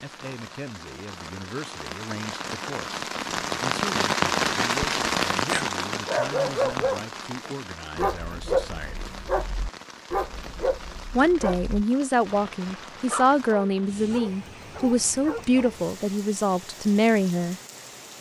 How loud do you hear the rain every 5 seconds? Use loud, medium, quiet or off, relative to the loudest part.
loud, loud, quiet, quiet.